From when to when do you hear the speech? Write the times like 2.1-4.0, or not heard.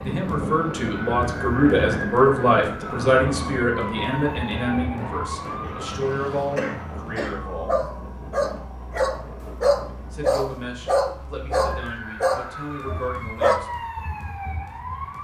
0.0-7.8, 10.1-13.8.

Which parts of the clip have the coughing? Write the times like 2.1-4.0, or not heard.
5.6-7.5.